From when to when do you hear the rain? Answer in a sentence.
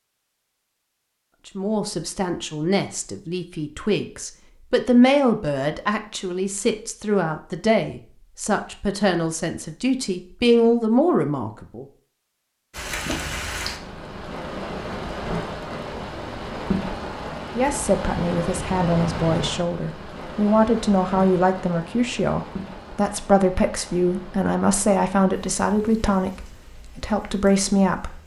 You can hear the rain from 12.7 to 28.2 s.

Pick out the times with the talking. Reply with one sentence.
You can hear the talking from 1.4 to 11.8 s and from 17.6 to 28.2 s.